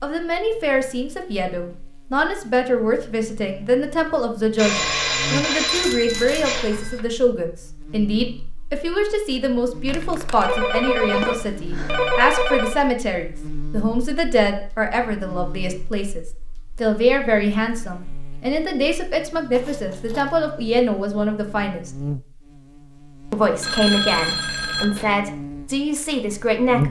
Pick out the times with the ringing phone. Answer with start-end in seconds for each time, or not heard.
4.5-7.0, 10.3-12.8, 23.6-25.1.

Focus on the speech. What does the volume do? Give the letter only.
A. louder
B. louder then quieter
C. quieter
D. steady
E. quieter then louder
D.